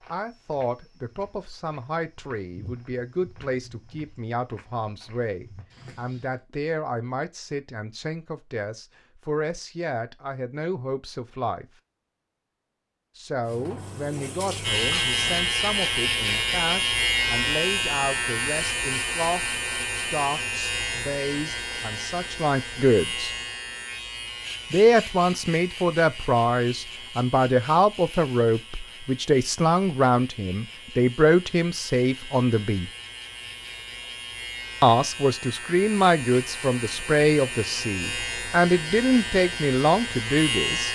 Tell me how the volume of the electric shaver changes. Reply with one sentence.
The volume of the electric shaver goes down, then up.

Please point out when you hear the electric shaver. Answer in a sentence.
You can hear the electric shaver from 14.6 to 40.9 s.